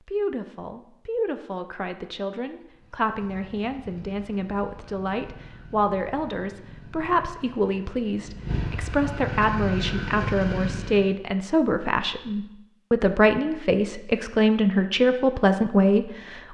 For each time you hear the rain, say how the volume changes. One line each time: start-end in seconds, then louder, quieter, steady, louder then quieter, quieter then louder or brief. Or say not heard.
not heard.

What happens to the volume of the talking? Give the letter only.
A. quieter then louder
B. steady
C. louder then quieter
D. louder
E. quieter
D.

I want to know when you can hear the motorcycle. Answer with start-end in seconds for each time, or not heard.
2.7-11.1.